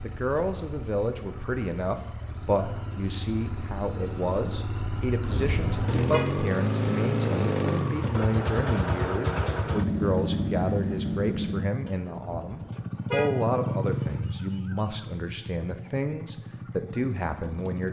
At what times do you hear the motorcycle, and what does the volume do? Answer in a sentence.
The motorcycle can be heard from 0.0 to 17.8 s, getting louder then quieter.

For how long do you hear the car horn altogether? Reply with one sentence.
The car horn can be heard for 2 seconds in total.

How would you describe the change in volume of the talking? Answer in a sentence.
The volume of the talking stays about the same.